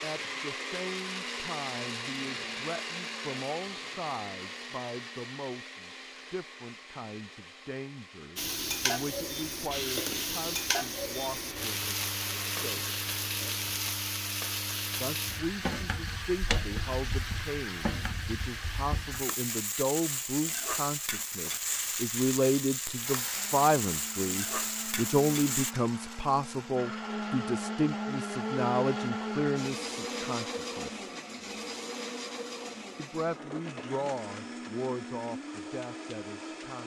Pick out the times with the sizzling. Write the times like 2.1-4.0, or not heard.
8.3-25.8.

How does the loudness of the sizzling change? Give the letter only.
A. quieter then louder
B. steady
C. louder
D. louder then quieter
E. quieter
B.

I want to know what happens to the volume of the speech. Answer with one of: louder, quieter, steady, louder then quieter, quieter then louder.
louder then quieter.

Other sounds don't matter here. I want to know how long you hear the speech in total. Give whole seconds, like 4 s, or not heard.
33 s.